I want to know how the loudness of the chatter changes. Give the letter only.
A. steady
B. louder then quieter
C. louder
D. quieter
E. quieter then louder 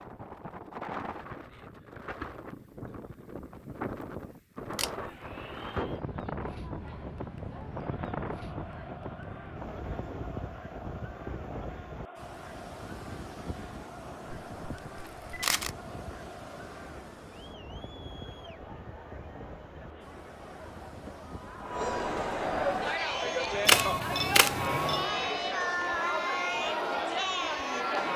C.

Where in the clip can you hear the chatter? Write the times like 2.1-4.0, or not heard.
4.8-28.1.